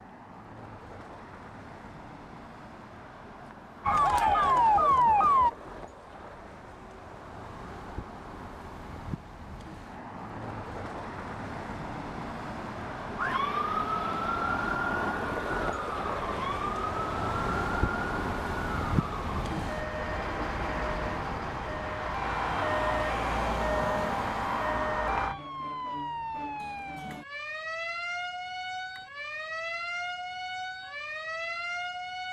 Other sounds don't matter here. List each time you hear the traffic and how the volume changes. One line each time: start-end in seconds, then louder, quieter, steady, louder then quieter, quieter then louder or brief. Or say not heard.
0.0-25.4 louder.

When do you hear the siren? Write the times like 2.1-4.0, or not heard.
3.9-5.5, 13.2-32.2.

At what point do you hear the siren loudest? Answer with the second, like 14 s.
5 s.